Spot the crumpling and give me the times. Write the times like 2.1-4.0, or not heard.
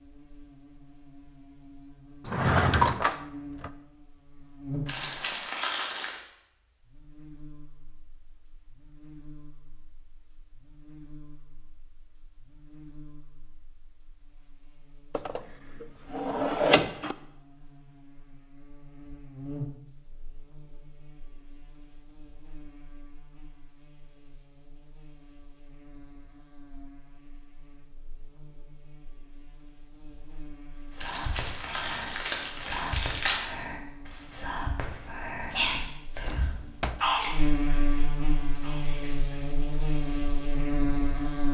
4.8-6.2, 31.0-33.5.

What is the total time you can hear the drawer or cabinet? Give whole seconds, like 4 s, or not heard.
5 s.